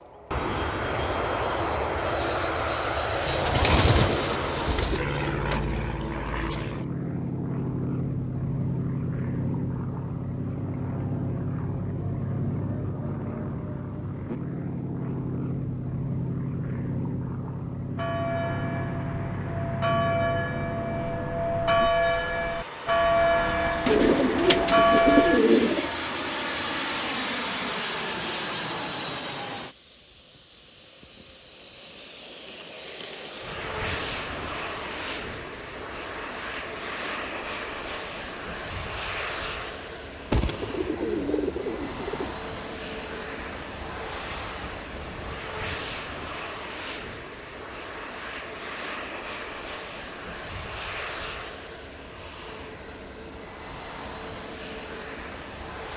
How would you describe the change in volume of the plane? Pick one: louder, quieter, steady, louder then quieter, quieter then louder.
quieter.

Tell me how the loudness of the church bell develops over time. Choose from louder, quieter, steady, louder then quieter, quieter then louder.
louder.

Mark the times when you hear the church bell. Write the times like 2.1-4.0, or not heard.
17.9-25.4.